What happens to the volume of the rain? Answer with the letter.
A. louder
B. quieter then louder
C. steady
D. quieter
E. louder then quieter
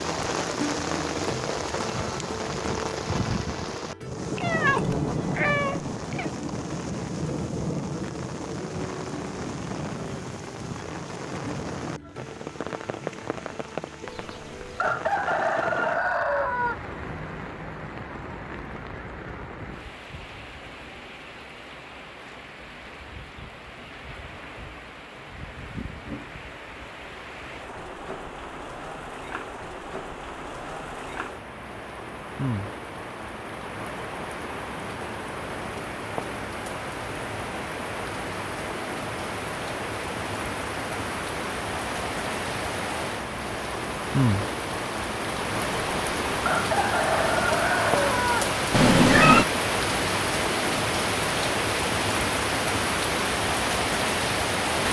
B.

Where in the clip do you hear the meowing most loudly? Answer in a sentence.
The volume of the meowing peaks at 49 seconds.